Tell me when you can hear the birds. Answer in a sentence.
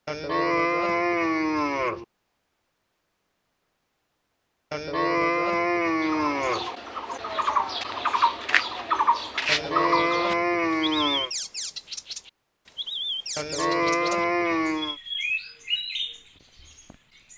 You can hear the birds from 6.0 to 17.3 s.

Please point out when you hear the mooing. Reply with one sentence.
The mooing can be heard from 0.1 to 2.0 s, from 4.7 to 6.7 s, from 9.4 to 11.3 s and from 13.3 to 14.9 s.